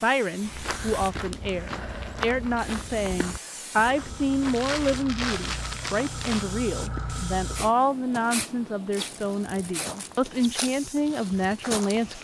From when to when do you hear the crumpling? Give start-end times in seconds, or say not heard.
0.7-1.4, 4.4-6.5, 8.9-10.3.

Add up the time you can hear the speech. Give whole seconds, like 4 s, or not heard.
12 s.